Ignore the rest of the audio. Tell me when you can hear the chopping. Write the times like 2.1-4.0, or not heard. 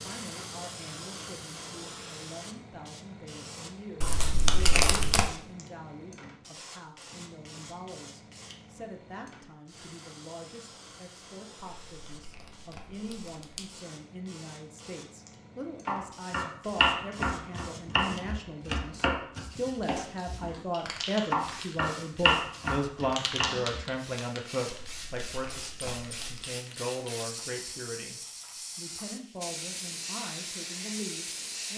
15.8-20.6, 21.3-23.9.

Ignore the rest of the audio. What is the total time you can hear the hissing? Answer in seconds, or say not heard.
32 s.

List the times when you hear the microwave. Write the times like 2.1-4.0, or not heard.
not heard.